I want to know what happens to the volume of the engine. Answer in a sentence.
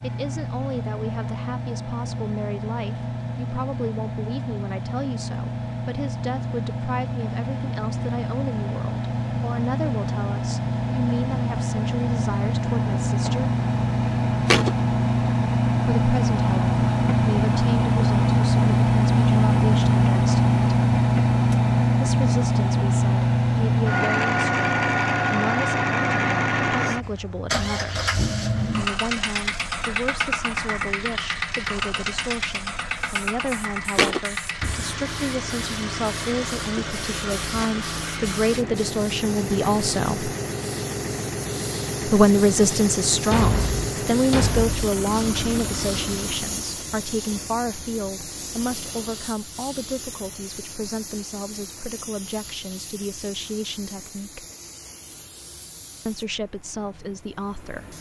The loudness of the engine goes up, then down.